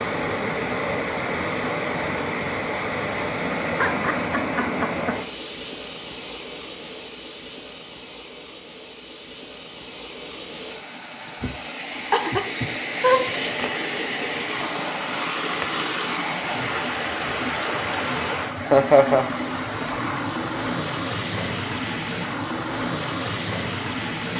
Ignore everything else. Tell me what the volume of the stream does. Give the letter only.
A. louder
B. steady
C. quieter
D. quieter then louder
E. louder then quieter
D.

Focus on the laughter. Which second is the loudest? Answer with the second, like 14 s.
19 s.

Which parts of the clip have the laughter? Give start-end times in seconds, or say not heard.
3.8-5.2, 11.4-13.3, 18.6-19.2.